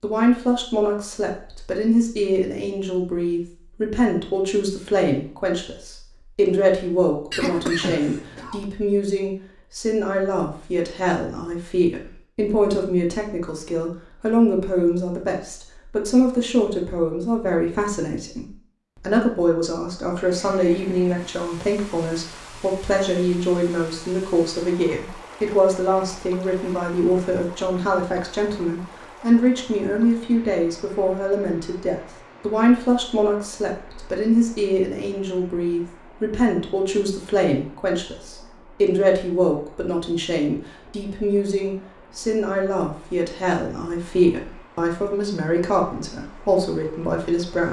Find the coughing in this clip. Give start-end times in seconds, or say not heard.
7.3-8.7.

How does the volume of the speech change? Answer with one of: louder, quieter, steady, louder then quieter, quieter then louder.
steady.